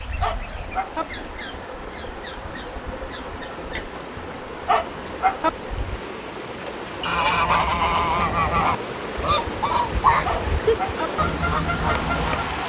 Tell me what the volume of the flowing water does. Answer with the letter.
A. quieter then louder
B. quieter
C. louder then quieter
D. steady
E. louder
E.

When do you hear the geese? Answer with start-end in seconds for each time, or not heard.
7.0-12.6.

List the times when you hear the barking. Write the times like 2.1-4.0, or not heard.
0.2-1.1, 4.7-5.5, 10.2-11.1.